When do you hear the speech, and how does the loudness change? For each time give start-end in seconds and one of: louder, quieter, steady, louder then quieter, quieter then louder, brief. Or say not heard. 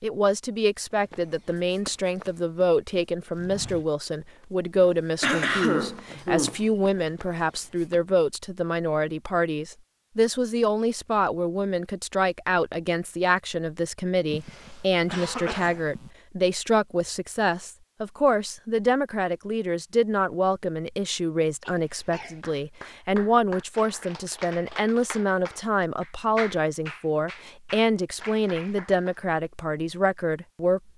0.0-30.8 steady.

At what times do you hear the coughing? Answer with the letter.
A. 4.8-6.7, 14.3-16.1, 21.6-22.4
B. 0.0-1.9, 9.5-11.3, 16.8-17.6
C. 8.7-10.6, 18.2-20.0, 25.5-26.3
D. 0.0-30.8
A.